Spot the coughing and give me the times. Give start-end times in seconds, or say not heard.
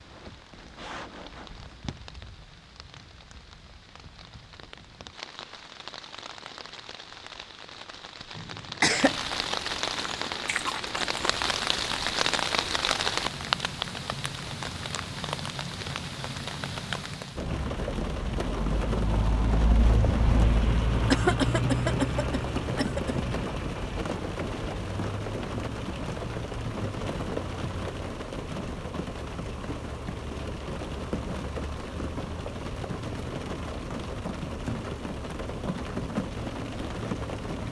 8.3-9.2, 21.1-23.1.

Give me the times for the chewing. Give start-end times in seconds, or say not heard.
9.9-11.5.